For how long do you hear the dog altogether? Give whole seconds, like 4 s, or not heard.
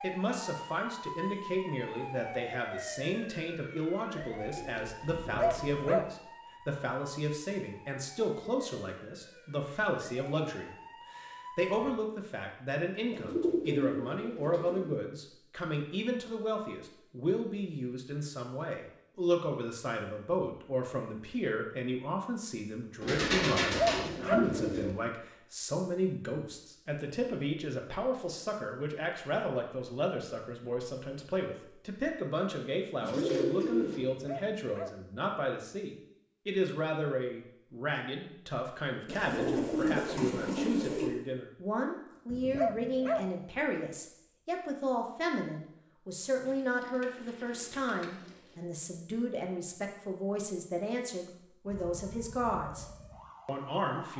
4 s.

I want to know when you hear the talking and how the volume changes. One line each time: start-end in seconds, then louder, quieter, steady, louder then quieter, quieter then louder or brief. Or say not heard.
0.0-52.9 steady
53.5-54.1 brief.